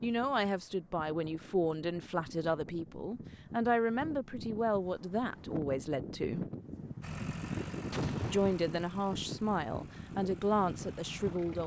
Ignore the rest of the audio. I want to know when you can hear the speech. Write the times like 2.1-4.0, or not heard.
0.0-6.5, 8.2-11.6.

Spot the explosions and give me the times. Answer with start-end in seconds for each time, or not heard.
7.9-8.8.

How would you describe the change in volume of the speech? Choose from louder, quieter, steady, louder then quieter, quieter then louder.
steady.